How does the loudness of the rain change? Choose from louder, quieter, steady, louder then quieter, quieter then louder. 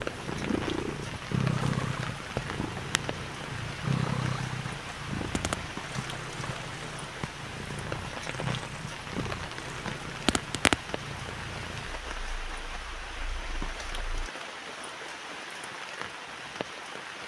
steady.